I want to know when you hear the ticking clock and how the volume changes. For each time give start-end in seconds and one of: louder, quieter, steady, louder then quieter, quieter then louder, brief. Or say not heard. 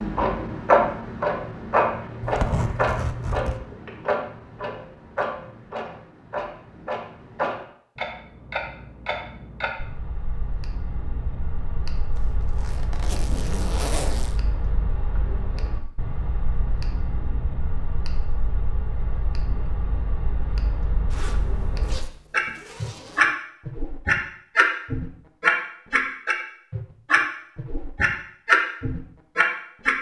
0.0-29.9 quieter then louder.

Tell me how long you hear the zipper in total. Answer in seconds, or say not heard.
6 s.